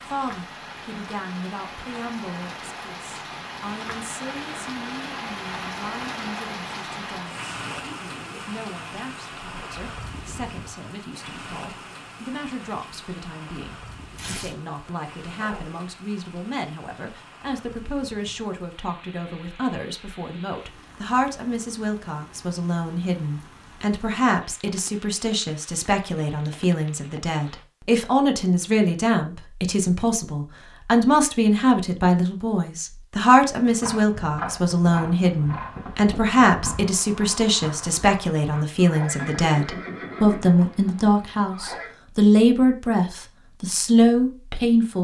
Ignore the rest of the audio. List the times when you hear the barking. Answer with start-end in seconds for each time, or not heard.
14.2-15.8.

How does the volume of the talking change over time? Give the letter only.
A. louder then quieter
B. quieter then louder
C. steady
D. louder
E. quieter
D.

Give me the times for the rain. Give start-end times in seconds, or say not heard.
0.0-27.6.